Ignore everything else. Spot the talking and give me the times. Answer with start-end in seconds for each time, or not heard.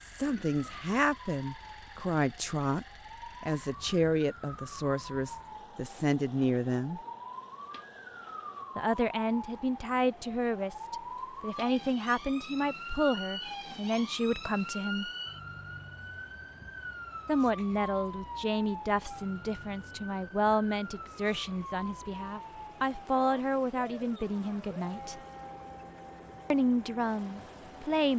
0.0-7.0, 8.8-15.1, 17.2-25.2, 26.5-28.1.